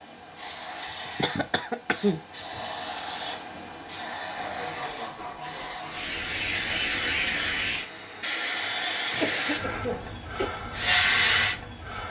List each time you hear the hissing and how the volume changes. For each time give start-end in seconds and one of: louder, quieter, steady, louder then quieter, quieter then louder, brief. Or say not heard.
0.0-12.0 louder.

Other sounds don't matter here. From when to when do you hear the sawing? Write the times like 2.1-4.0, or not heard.
4.3-6.0.